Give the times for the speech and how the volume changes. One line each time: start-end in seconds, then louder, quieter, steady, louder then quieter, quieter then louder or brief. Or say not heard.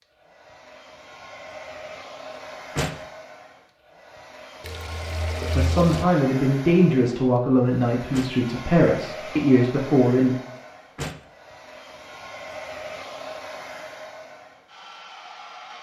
5.4-10.3 steady.